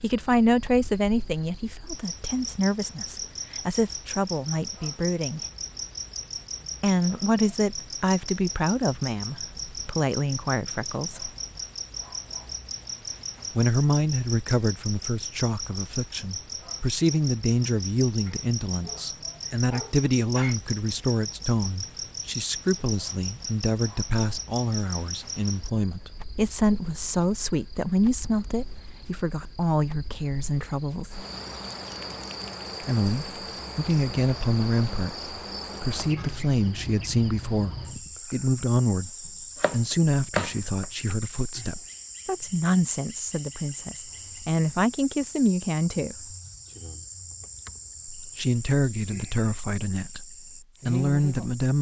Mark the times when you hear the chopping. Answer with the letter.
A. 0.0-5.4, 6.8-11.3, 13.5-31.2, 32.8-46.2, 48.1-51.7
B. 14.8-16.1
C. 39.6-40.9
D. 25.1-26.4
C.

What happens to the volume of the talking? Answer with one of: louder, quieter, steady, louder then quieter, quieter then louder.
steady.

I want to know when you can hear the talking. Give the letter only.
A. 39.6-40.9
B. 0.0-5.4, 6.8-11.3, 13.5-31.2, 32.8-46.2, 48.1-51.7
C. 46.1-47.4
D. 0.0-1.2
B.